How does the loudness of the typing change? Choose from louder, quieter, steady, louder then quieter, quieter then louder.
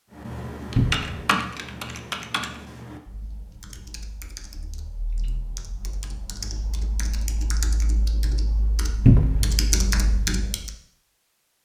quieter then louder.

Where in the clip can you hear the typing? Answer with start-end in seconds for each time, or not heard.
0.1-10.7.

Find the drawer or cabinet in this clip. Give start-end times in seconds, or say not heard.
0.8-1.2, 9.1-9.6.